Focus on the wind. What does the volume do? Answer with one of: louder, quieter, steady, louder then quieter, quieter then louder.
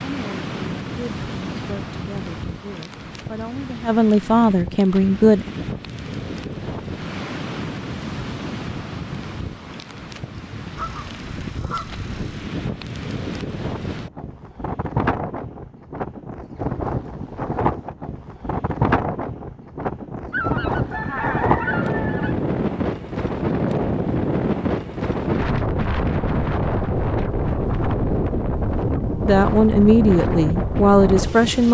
louder.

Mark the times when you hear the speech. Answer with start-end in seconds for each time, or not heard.
0.0-5.5, 29.2-31.6.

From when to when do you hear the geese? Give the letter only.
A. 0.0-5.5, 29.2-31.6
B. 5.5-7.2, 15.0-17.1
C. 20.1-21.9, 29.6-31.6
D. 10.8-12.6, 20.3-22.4
D.